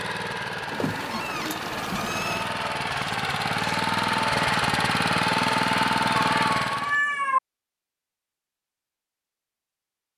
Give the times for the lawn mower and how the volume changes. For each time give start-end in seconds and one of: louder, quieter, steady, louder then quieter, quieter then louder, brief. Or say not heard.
0.0-7.0 louder.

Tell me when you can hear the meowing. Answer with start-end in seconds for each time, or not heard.
0.7-2.5, 6.3-7.4.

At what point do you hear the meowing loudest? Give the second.
7 s.